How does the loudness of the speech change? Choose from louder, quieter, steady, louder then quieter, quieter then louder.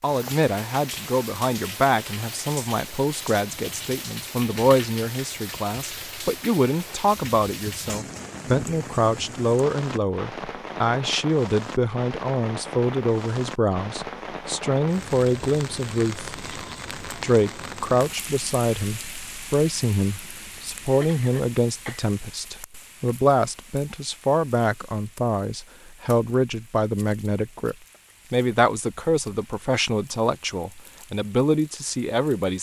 steady.